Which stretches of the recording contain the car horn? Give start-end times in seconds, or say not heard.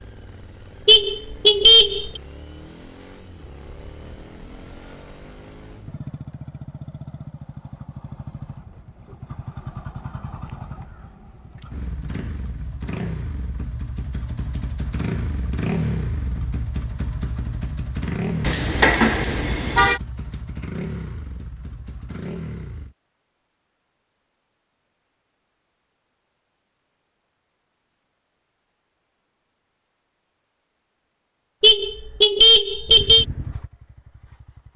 0.8-2.2, 18.4-20.0, 31.6-33.2.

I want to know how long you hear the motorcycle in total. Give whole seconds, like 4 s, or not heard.
25 s.